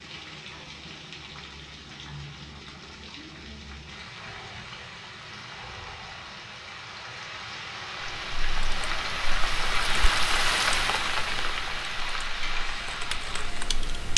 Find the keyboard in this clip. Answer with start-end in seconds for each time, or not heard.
8.2-14.1.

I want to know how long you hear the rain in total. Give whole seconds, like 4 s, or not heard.
14 s.